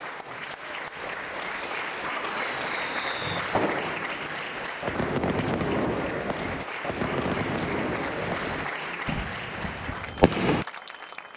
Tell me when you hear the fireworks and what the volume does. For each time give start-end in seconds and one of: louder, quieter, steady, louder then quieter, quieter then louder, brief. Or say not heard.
1.5-10.7 louder.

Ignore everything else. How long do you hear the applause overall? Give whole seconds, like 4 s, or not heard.
11 s.